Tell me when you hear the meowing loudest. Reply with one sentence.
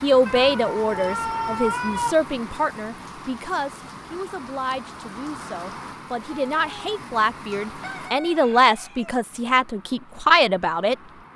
The volume of the meowing peaks at 2 seconds.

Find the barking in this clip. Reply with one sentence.
The barking can't be heard in this clip.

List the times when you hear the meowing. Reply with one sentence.
The meowing can be heard from 0.2 to 2.1 s and from 6.2 to 6.8 s.